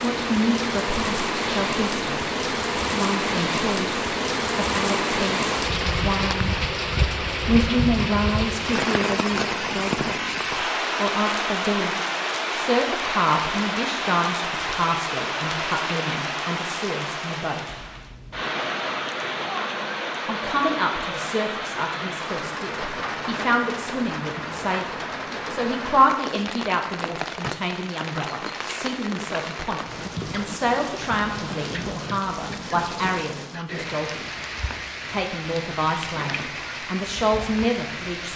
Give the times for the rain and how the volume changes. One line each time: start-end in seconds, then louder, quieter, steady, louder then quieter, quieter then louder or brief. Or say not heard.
0.0-38.3 quieter.